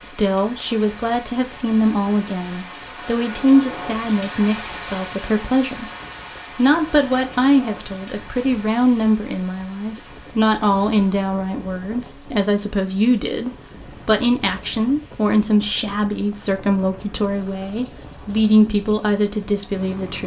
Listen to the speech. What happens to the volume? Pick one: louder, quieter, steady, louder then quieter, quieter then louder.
steady.